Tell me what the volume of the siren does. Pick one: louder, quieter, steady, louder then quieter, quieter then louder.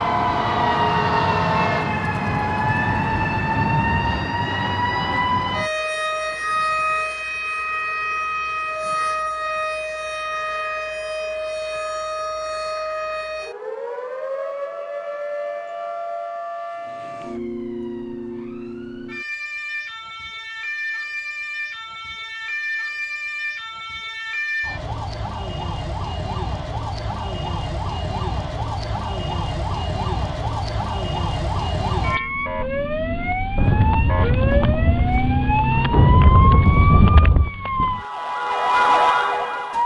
quieter then louder.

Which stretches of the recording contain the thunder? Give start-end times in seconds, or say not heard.
2.5-4.3, 33.5-37.5.